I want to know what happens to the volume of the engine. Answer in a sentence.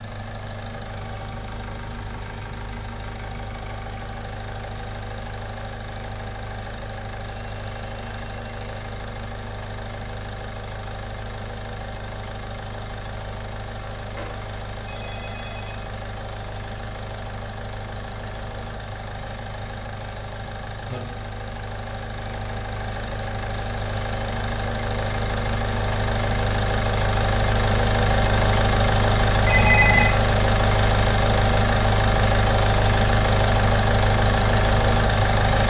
The volume of the engine goes up.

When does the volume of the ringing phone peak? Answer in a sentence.
The loudest moment of the ringing phone is at 30 seconds.